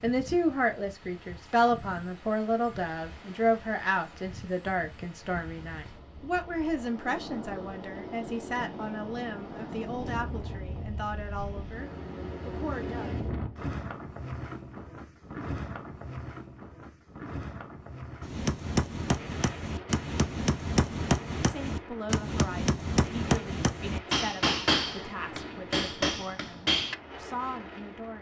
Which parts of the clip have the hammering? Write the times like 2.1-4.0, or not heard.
18.2-26.9.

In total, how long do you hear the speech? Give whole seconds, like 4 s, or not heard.
20 s.